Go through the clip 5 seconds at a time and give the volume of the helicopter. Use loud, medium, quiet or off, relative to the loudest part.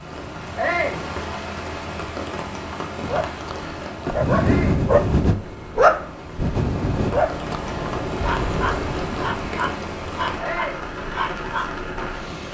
medium, loud, medium.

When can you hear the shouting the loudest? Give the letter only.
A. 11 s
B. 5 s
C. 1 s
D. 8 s
C.